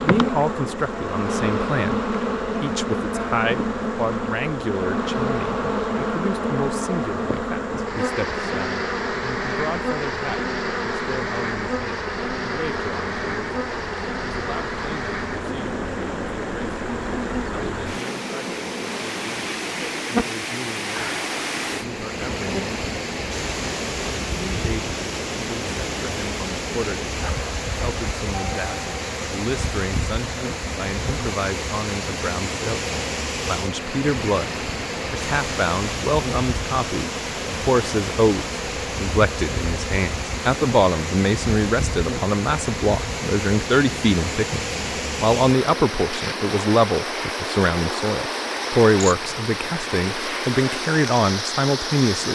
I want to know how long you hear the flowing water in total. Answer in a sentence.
You can hear the flowing water for 52 seconds altogether.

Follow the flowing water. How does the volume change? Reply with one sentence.
The loudness of the flowing water goes up.